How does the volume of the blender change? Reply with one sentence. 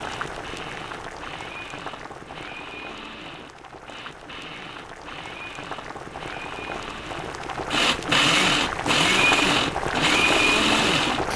The volume of the blender goes up.